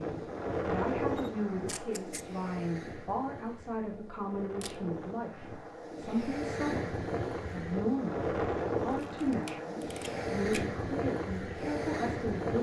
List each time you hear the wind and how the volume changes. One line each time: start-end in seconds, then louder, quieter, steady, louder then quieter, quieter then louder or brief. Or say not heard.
0.0-12.5 quieter then louder.